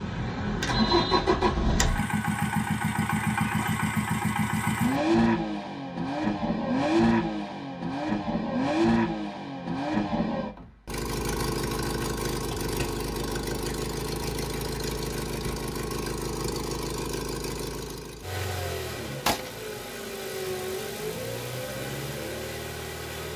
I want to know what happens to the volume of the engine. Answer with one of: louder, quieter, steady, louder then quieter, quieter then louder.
quieter.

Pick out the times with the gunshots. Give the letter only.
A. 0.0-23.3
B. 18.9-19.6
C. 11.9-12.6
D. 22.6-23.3
B.